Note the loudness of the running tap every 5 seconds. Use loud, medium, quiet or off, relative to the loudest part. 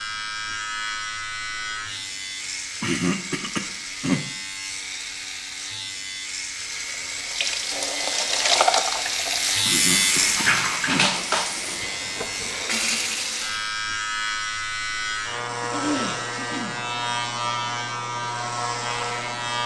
off, loud, loud, off.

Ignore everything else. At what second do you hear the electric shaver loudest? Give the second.
10 s.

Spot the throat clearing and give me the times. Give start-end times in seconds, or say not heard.
2.8-4.2, 9.7-11.1, 15.6-16.8.